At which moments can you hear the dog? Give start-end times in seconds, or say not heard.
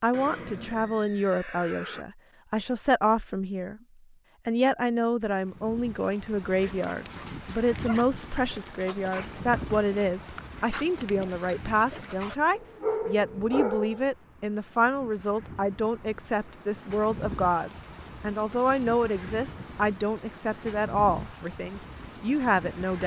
6.5-14.1.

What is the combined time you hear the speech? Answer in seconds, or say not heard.
22 s.